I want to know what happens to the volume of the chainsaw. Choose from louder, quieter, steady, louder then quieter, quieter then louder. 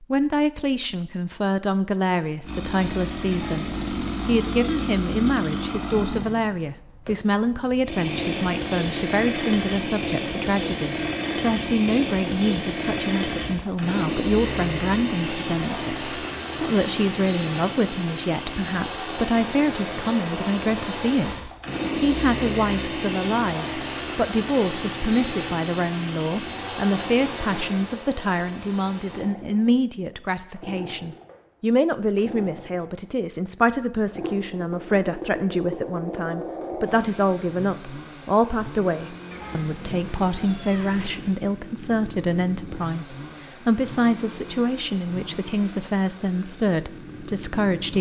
quieter.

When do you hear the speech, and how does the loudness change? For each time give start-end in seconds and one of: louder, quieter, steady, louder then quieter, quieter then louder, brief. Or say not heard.
0.0-47.9 steady.